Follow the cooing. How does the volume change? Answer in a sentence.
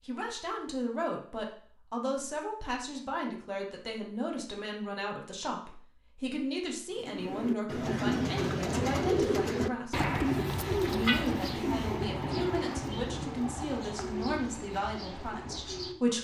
The loudness of the cooing goes down.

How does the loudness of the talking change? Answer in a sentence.
The loudness of the talking stays about the same.